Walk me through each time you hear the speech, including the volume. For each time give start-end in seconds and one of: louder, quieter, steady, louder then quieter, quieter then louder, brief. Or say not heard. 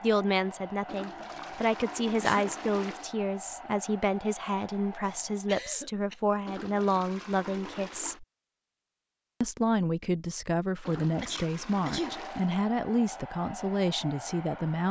0.0-8.2 steady
9.4-14.8 steady.